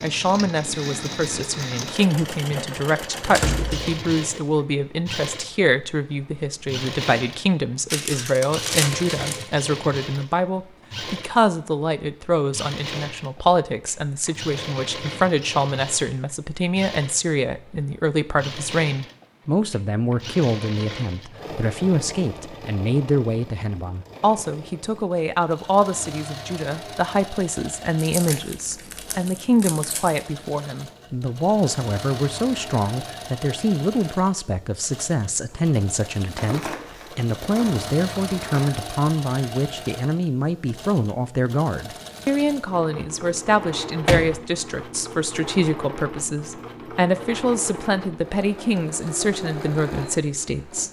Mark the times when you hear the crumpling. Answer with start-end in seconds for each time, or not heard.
7.9-9.4, 27.9-30.2, 36.4-38.9.